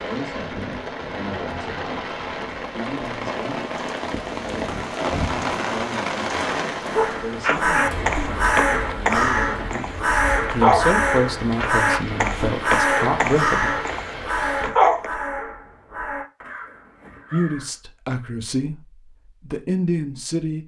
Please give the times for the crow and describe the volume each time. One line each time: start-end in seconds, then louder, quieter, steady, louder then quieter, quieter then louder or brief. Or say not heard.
6.8-17.8 quieter.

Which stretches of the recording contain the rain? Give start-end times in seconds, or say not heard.
0.0-14.7.